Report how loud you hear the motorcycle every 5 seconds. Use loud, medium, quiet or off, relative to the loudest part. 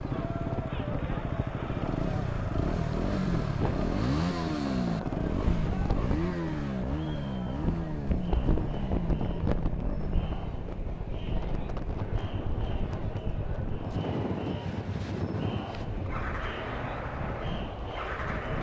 loud, loud, medium, medium.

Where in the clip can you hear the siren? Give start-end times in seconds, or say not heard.
not heard.